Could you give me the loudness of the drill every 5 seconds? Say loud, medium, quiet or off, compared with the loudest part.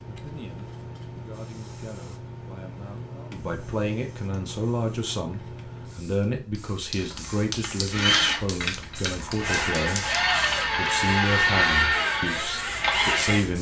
off, loud, loud.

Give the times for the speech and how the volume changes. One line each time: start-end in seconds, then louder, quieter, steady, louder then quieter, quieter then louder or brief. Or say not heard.
0.0-13.5 louder.